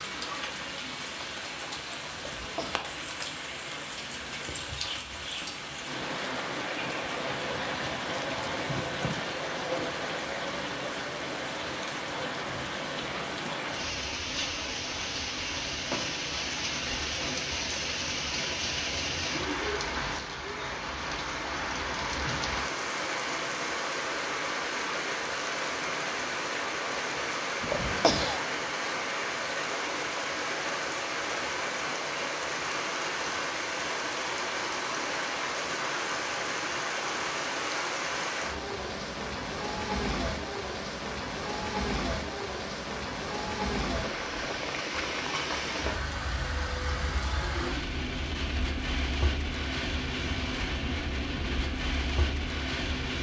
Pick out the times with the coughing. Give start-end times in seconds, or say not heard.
2.1-2.9, 27.6-28.4.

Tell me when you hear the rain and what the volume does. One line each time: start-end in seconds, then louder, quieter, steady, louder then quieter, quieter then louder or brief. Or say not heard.
0.0-53.1 steady.